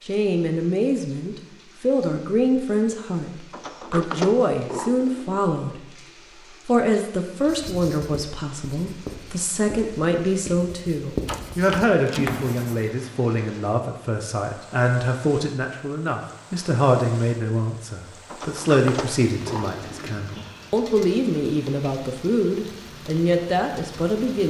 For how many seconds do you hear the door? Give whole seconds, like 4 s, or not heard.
5 s.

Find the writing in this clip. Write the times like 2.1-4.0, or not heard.
7.5-12.8.